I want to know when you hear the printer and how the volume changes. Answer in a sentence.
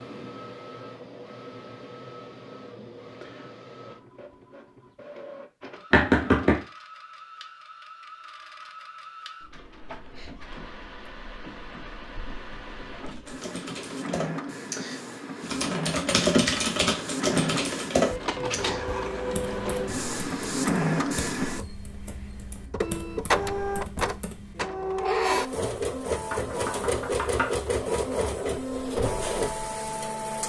You can hear the printer from 0.0 to 30.4 s, getting louder.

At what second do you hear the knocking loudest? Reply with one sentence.
The loudest moment of the knocking is at 6 seconds.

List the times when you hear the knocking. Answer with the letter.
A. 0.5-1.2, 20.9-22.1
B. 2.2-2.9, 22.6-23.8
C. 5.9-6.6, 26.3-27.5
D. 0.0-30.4
C.